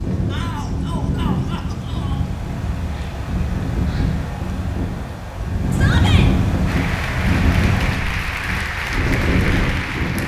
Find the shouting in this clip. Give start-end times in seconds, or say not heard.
0.3-2.2, 5.7-6.3.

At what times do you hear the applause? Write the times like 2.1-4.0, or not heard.
6.7-10.2.